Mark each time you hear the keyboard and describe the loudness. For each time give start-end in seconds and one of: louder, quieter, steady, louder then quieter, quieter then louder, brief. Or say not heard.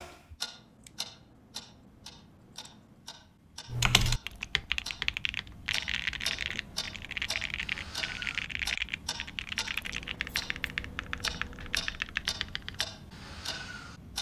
3.6-12.9 steady.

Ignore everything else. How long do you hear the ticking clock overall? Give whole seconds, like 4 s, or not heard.
14 s.